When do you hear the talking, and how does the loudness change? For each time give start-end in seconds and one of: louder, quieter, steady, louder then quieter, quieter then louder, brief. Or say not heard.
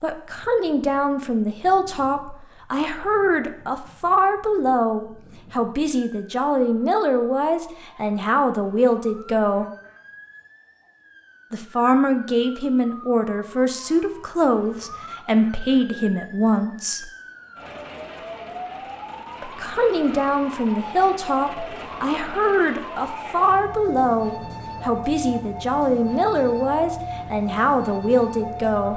0.0-9.7 steady
11.5-17.1 steady
19.4-28.9 steady.